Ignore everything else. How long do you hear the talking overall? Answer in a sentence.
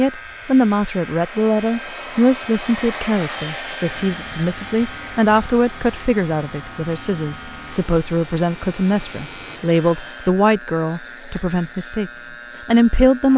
The talking can be heard for 13 seconds in total.